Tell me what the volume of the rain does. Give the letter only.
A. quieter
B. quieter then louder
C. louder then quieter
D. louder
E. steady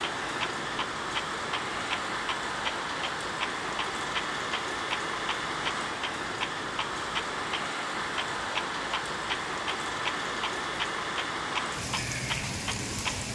E.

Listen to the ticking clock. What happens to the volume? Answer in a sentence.
The loudness of the ticking clock stays about the same.